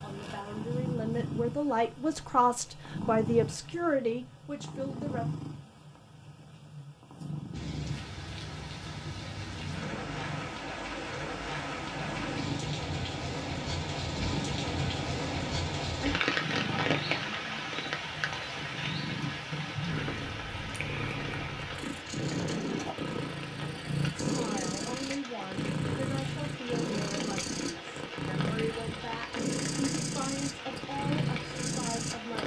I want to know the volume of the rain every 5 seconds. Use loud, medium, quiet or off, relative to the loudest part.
off, medium, loud, loud, medium, medium, medium.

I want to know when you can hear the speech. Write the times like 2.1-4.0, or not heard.
0.0-5.2, 24.2-32.4.